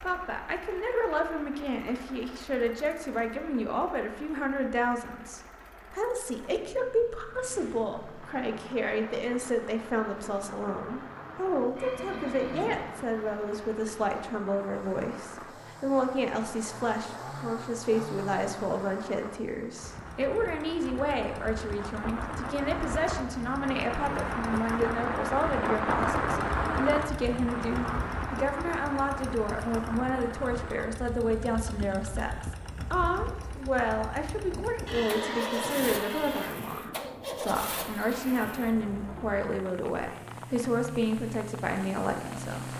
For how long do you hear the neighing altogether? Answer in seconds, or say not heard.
3 s.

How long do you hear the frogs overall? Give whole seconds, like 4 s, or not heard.
not heard.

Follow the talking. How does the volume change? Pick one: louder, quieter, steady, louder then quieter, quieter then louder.
steady.